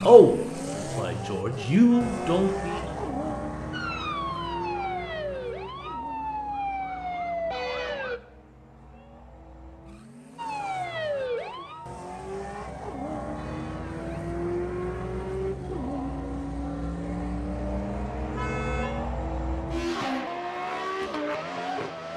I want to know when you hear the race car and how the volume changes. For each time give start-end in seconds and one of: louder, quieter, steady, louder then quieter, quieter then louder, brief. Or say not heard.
0.0-22.1 quieter then louder.